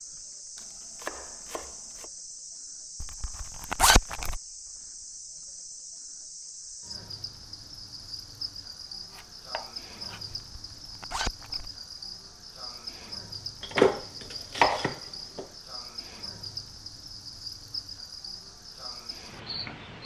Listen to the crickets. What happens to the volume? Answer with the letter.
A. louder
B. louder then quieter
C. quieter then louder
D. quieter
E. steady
E.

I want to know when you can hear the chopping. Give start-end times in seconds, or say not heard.
0.6-2.1, 9.1-10.2, 13.6-15.4.